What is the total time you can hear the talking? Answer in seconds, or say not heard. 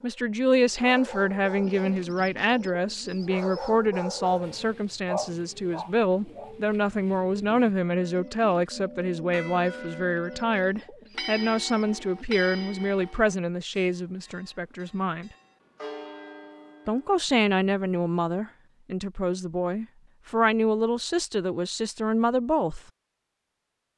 21 s.